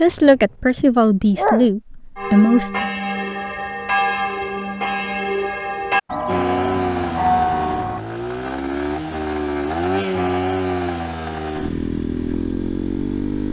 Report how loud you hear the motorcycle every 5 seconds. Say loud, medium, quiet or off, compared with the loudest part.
off, loud, loud.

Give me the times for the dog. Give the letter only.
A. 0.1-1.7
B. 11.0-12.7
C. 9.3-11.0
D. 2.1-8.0
A.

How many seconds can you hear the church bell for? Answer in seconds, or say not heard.
6 s.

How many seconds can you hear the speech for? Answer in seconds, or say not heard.
3 s.